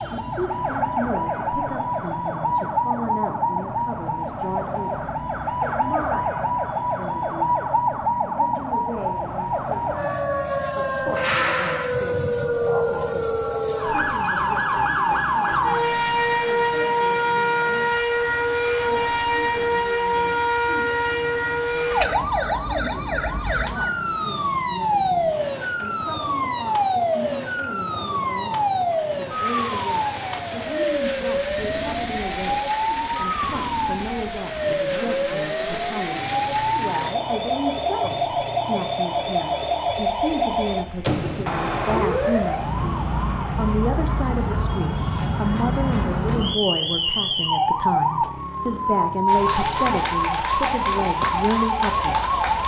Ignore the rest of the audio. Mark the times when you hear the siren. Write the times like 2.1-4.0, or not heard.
0.0-52.6.